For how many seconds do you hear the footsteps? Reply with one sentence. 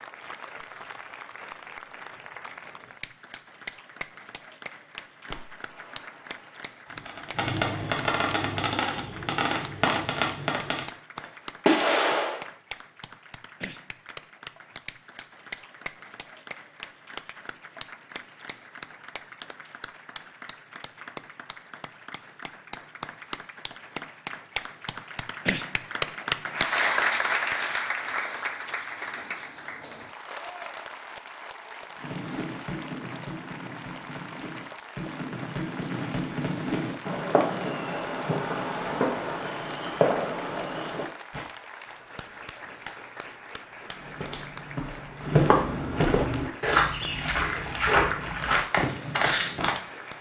The footsteps can be heard for 6 seconds in total.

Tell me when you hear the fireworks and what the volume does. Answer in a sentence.
The fireworks can be heard from 5.2 to 12.4 s, getting louder; and from 31.9 to 41.5 s, getting louder.